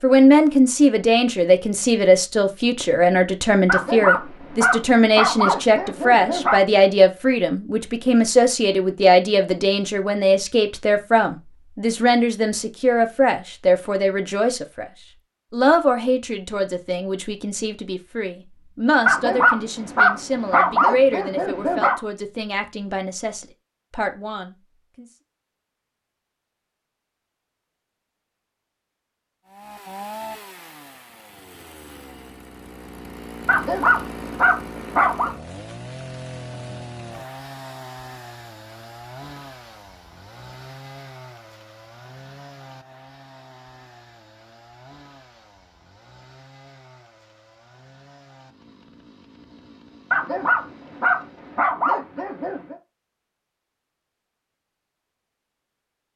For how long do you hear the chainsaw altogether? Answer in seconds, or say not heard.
22 s.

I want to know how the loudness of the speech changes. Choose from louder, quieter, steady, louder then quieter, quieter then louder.
quieter.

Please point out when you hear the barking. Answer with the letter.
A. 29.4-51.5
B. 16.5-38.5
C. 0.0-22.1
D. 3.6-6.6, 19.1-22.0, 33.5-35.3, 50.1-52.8
D.